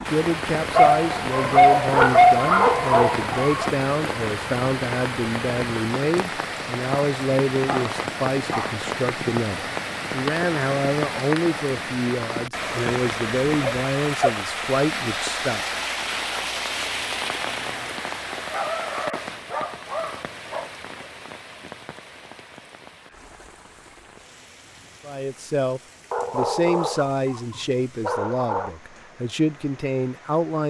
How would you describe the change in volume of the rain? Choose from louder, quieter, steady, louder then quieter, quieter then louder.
quieter.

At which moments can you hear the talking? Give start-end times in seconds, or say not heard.
0.1-15.6, 25.1-30.6.